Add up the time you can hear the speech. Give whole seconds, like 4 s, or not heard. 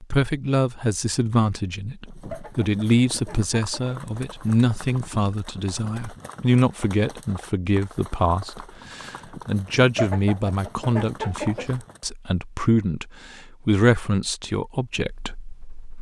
16 s.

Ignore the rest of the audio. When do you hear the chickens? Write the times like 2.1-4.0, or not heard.
2.3-4.0, 9.9-11.7.